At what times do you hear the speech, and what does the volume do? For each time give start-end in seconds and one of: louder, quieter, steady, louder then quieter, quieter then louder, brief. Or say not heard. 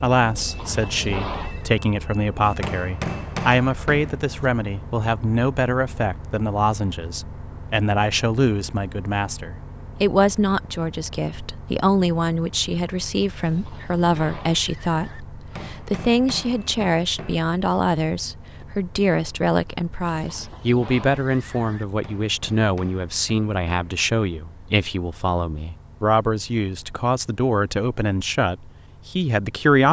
0.0-29.8 steady.